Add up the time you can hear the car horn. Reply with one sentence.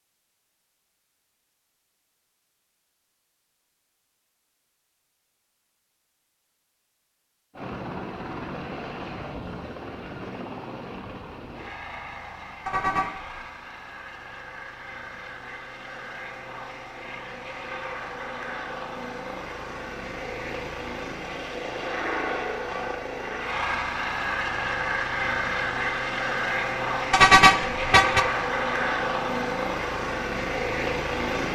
You can hear the car horn for 2 seconds altogether.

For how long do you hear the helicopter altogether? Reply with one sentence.
The helicopter can be heard for 24 seconds in total.